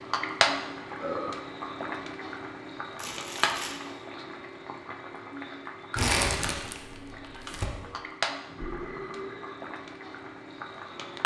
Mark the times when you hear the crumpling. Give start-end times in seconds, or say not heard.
3.0-3.8, 6.0-7.7.